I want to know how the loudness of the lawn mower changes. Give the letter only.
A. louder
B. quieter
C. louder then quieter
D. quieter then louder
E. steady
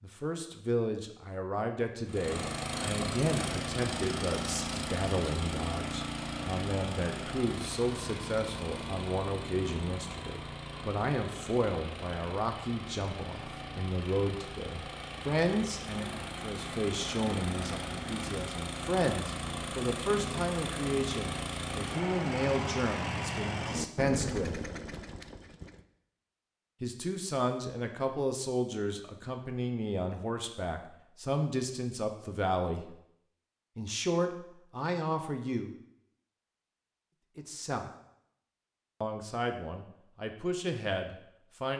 D.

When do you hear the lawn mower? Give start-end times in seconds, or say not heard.
2.0-25.8.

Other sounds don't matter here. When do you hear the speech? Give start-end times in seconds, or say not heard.
0.0-24.6, 26.8-33.0, 33.8-35.8, 37.4-37.9, 39.0-41.7.